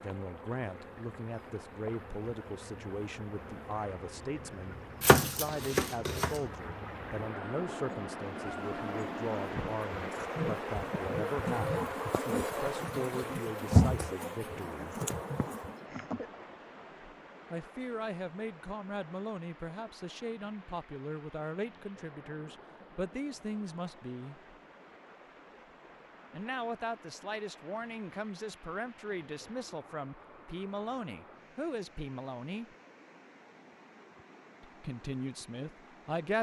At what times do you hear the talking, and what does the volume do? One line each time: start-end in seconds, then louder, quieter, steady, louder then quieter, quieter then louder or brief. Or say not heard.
0.0-15.0 steady
17.5-24.4 steady
26.3-32.7 steady
34.6-36.3 brief.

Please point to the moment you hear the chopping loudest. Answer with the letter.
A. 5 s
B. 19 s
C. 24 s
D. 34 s
A.